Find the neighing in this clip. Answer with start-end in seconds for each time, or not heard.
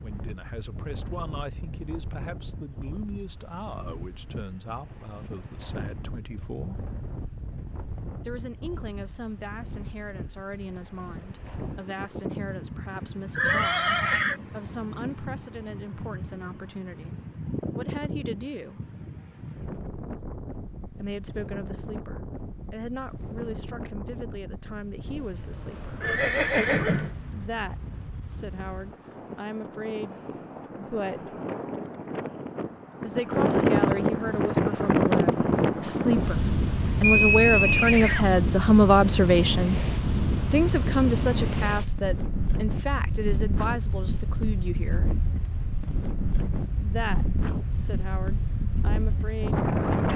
13.3-14.3, 26.0-27.1, 37.0-38.2.